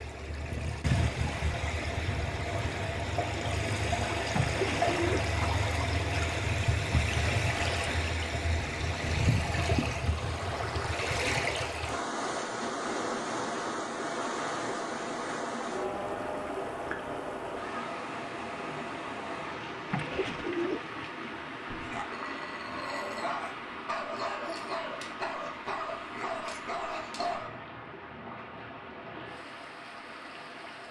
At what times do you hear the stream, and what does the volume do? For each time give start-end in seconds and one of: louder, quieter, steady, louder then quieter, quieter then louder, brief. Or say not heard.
0.0-30.8 quieter.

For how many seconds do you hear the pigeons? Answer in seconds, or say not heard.
2 s.